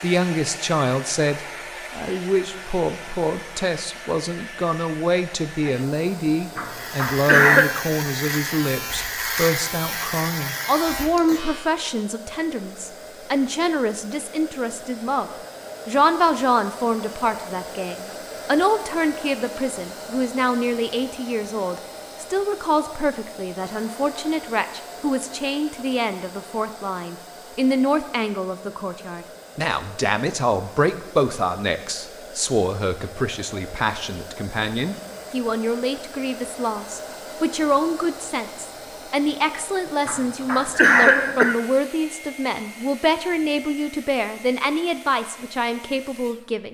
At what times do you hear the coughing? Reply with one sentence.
You can hear the coughing from 6.5 to 7.7 s and from 40.0 to 41.5 s.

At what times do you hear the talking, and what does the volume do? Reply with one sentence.
You can hear the talking from 0.0 to 46.6 s, at a steady volume.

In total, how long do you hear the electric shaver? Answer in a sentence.
The electric shaver can be heard for 5 seconds in total.